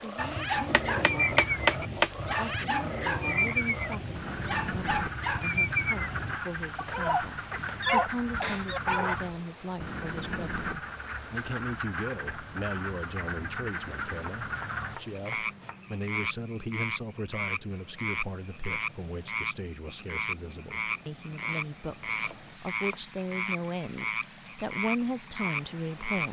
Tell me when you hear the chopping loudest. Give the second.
2 s.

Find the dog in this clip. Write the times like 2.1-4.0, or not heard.
0.1-9.2.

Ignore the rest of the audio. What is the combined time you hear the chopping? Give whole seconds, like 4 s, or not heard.
7 s.